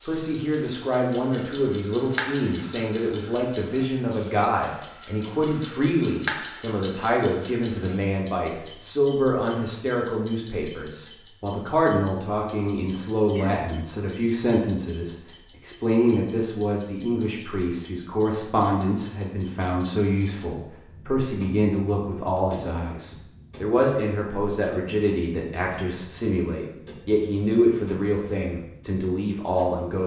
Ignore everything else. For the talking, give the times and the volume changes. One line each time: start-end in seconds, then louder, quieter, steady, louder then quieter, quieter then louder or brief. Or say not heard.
0.0-30.0 steady.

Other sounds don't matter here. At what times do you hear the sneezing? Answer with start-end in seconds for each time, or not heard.
13.3-13.8.